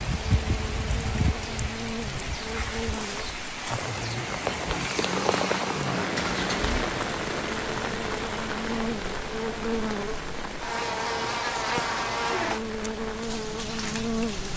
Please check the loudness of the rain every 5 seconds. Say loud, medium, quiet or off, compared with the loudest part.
loud, loud, medium.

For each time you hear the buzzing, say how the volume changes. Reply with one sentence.
You can hear the buzzing from 0.0 to 14.5 s, getting louder.